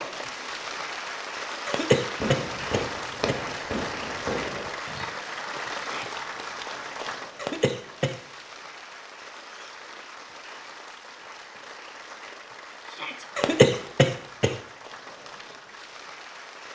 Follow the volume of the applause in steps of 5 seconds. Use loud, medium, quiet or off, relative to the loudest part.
loud, loud, medium, medium.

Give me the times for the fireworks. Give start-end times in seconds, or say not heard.
2.2-5.0.